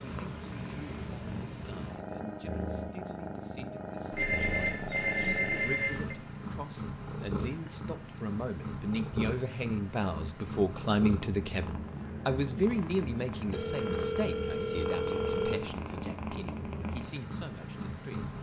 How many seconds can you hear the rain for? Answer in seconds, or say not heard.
not heard.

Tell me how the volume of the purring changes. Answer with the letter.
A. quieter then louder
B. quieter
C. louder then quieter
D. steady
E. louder
D.